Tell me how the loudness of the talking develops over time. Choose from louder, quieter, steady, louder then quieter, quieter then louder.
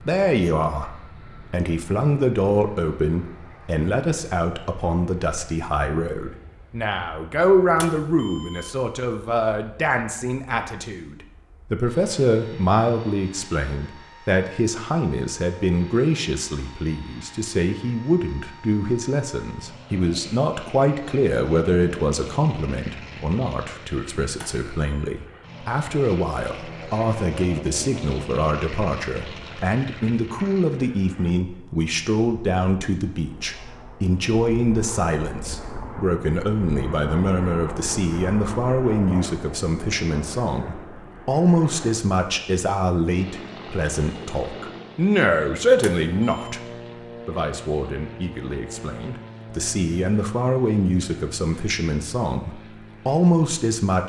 steady.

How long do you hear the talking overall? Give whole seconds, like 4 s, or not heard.
53 s.